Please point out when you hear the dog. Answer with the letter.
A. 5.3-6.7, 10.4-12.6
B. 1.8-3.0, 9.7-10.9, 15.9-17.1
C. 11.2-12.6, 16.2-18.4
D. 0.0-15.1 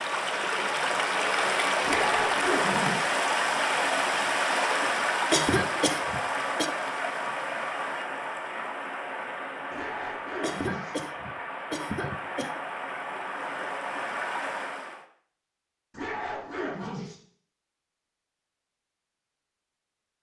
B.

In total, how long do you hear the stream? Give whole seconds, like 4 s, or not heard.
15 s.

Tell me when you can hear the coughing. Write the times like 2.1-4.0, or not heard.
5.3-6.7, 10.4-12.6.